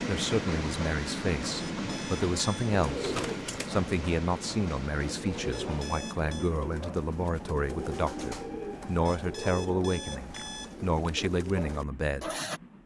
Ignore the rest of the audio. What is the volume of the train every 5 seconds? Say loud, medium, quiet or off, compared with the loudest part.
loud, medium, quiet.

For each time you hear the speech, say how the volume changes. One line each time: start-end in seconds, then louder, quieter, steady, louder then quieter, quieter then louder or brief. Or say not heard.
0.0-12.3 steady.